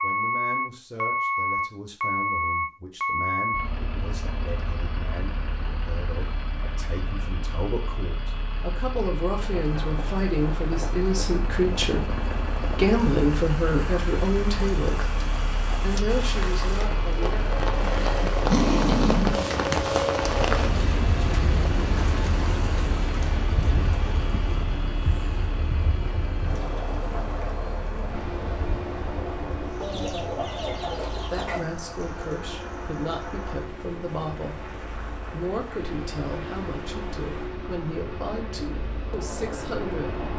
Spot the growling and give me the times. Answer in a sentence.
The growling can be heard from 17.8 to 19.9 s.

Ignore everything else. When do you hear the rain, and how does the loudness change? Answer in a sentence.
The rain can be heard from 9.2 to 40.3 s, getting louder then quieter.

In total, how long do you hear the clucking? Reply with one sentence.
The clucking can be heard for 2 seconds in total.